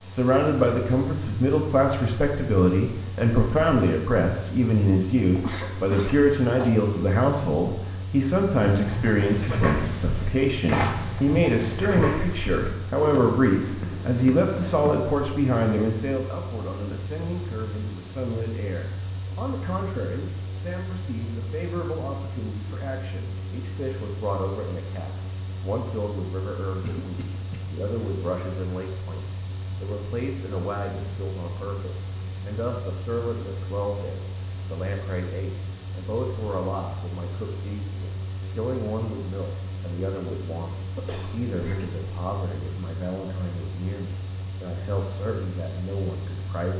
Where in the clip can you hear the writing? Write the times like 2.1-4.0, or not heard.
8.6-14.9.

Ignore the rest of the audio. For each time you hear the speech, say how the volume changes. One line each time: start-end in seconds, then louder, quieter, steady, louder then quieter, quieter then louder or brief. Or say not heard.
0.1-46.7 quieter.